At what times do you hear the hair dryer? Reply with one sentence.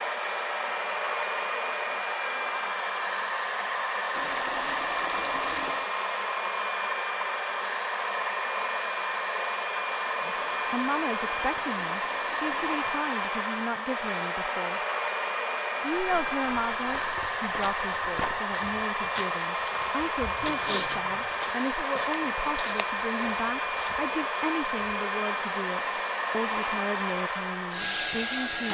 The hair dryer can be heard from 0.0 to 28.6 s.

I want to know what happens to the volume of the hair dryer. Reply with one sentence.
The loudness of the hair dryer stays about the same.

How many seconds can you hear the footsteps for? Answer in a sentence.
You can hear the footsteps for 9 seconds altogether.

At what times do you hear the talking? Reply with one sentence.
The talking can be heard from 10.2 to 14.8 s and from 15.8 to 28.6 s.